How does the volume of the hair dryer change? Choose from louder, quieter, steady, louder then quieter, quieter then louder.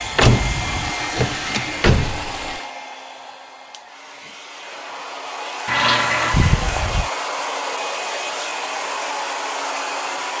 quieter then louder.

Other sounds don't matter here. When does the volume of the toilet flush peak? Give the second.
6 s.